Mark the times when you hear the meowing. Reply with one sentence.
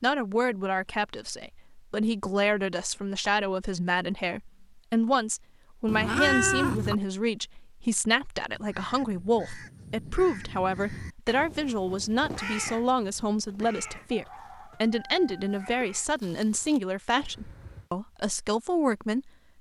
You can hear the meowing from 5.8 to 7.0 s.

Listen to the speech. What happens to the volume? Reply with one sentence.
The volume of the speech stays about the same.